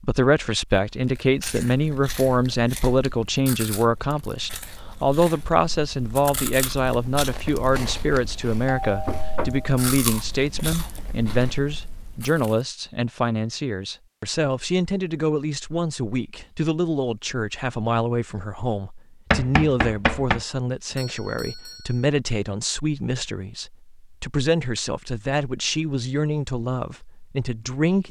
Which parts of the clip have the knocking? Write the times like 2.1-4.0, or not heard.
9.1-9.7, 19.3-20.4.